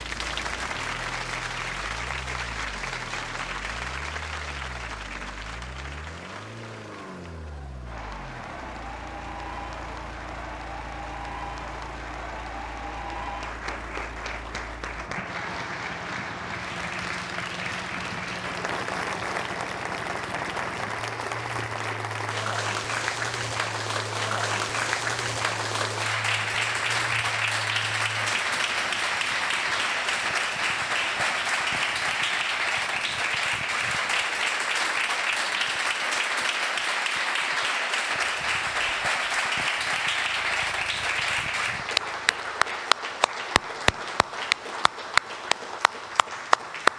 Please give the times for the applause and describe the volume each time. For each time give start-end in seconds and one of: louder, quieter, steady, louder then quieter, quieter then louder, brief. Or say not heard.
0.0-46.9 louder.